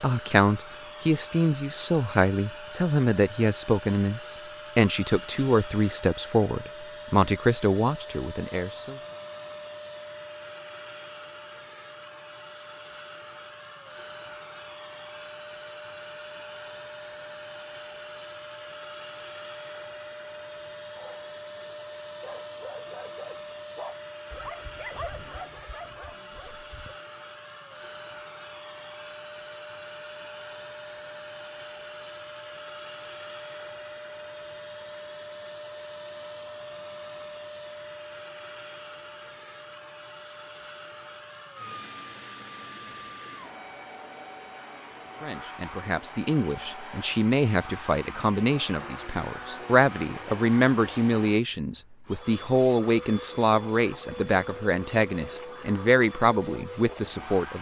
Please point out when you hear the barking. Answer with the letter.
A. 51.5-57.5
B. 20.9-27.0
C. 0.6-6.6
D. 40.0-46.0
B.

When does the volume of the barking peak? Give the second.
25 s.